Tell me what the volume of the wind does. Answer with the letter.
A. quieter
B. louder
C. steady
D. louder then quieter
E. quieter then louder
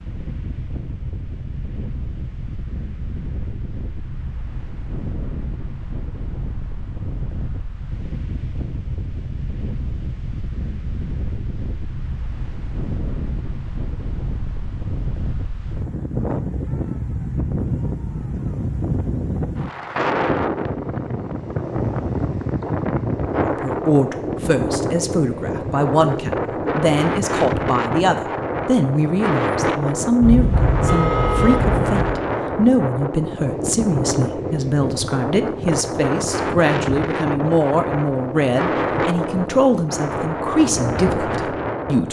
B.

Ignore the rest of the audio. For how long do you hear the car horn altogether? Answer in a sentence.
The car horn can be heard for 2 seconds in total.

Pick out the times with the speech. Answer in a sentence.
The speech can be heard from 23.4 to 42.0 s.